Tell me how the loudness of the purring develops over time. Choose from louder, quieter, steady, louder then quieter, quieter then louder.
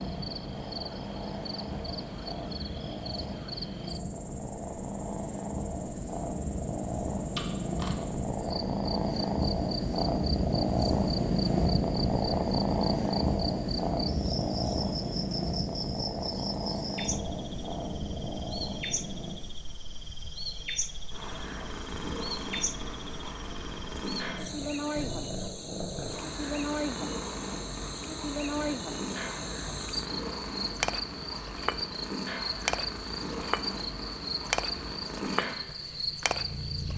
louder then quieter.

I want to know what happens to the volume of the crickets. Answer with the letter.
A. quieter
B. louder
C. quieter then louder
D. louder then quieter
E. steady
B.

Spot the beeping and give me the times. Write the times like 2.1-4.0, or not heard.
7.3-8.0.